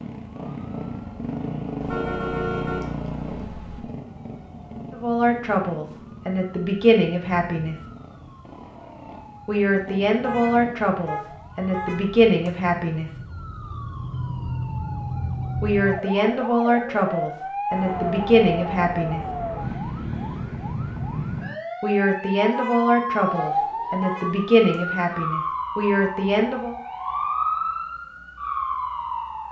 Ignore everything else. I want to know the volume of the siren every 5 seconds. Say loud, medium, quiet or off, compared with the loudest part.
quiet, quiet, medium, loud, loud, loud.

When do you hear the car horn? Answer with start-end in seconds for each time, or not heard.
1.8-3.8, 10.2-12.5, 22.5-24.8.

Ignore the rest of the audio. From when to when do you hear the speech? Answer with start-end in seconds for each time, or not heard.
4.9-7.8, 9.4-13.1, 15.6-19.2, 21.8-26.8.